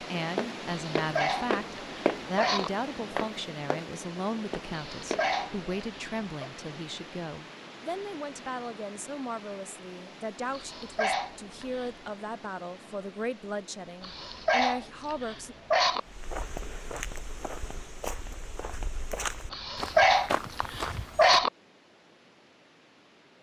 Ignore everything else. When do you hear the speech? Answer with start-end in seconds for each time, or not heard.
0.0-15.6.